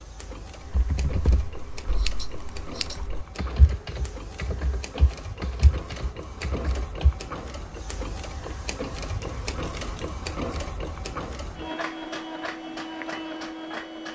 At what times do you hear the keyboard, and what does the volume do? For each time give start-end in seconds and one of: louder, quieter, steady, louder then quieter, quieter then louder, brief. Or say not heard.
0.7-7.2 quieter then louder.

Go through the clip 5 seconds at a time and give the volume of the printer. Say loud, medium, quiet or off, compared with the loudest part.
medium, loud, loud.